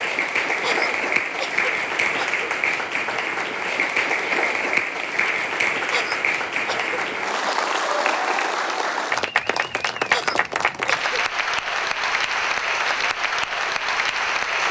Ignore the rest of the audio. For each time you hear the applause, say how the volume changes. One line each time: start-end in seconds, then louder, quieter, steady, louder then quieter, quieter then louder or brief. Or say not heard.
0.0-14.6 steady.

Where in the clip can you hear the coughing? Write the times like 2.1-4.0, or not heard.
0.6-2.5, 5.9-7.5, 10.1-11.2.